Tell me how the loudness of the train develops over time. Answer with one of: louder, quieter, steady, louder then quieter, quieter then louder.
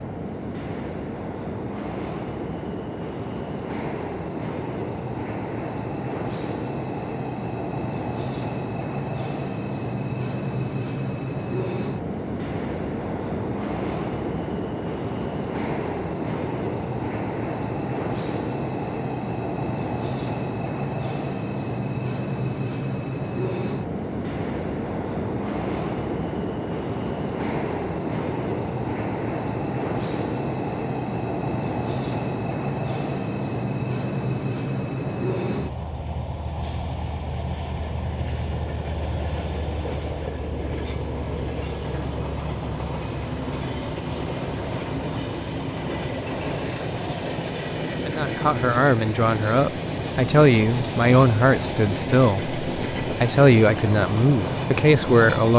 steady.